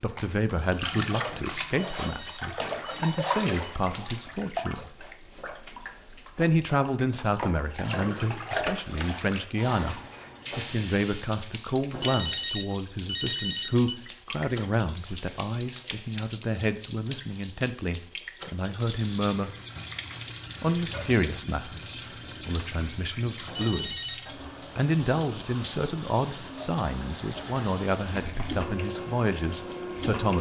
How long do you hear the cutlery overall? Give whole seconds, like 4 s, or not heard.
not heard.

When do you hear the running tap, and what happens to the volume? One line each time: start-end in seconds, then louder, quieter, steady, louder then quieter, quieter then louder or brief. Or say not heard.
0.0-30.3 steady.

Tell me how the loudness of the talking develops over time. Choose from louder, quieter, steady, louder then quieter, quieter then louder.
steady.